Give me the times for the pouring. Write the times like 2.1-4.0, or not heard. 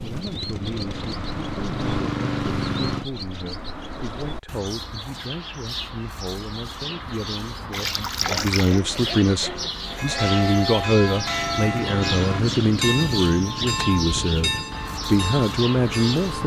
7.7-8.8.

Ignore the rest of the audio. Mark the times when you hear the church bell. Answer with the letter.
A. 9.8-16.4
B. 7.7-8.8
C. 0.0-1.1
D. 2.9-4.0
A.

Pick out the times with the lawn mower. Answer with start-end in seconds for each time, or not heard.
0.0-3.0, 11.1-16.4.